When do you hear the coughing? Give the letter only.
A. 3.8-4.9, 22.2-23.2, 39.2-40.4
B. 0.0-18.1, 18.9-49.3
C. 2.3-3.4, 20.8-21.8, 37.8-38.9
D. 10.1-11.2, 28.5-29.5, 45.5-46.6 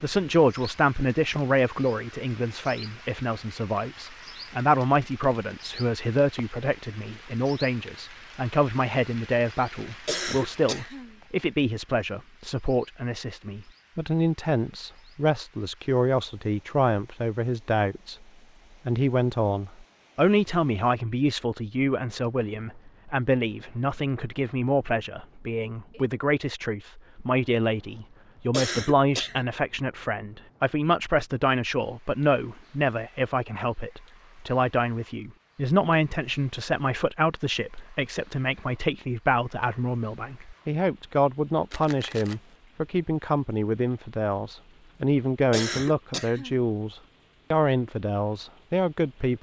D.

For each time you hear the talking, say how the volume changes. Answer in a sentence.
The talking can be heard from 0.0 to 18.1 s, at a steady volume; and from 18.9 to 49.3 s, at a steady volume.